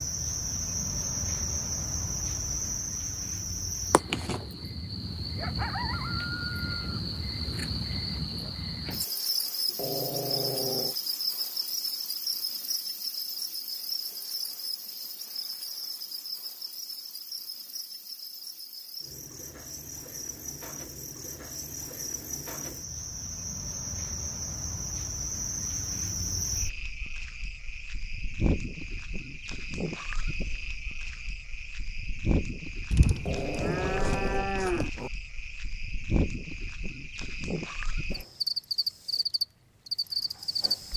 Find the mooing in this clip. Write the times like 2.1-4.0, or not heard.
32.9-34.9.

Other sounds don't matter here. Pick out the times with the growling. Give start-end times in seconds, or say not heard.
9.7-10.9, 33.1-35.1.